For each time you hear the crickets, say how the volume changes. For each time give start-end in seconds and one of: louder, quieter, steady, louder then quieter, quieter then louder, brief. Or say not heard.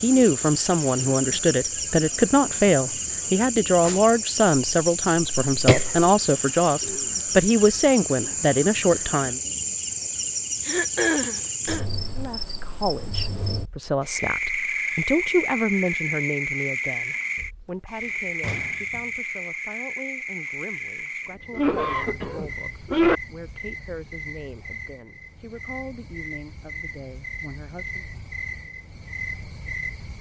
0.0-30.1 quieter.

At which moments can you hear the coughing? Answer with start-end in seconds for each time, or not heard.
4.5-6.1, 10.7-11.8, 21.6-23.2.